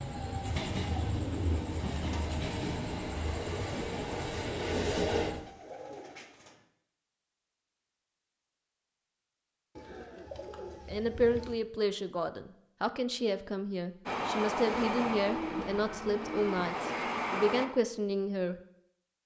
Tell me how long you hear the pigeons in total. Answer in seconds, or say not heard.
7 s.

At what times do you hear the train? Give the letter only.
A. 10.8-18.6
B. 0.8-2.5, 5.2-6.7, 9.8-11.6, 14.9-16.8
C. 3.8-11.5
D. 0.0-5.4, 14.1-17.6
D.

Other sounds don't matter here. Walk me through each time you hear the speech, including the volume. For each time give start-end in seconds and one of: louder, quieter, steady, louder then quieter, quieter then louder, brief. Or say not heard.
10.8-18.6 steady.